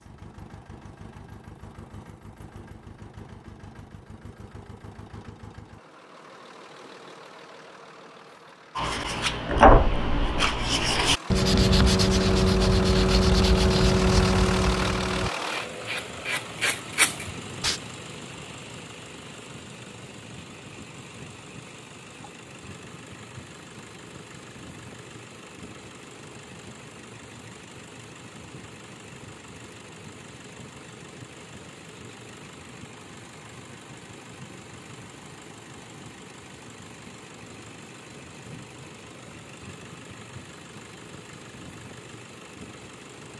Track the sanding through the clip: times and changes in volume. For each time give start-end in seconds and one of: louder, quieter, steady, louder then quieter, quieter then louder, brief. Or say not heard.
8.8-17.8 quieter.